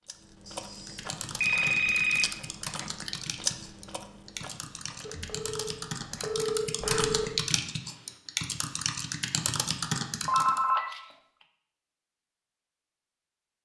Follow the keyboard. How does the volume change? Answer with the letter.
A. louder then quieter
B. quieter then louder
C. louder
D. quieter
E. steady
C.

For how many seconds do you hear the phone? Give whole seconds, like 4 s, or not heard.
5 s.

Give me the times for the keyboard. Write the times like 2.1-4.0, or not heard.
0.6-10.6.